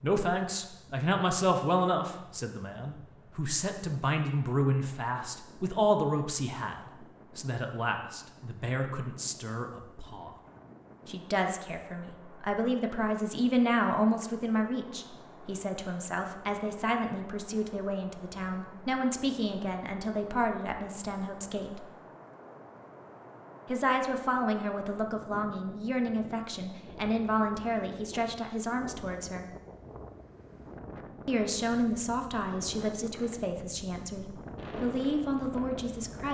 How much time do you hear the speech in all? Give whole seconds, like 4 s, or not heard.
32 s.